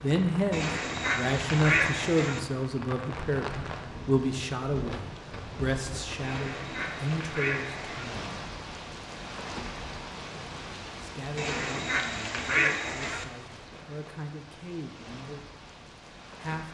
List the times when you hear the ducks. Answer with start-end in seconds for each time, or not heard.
0.5-2.4, 6.2-8.1, 11.3-13.2.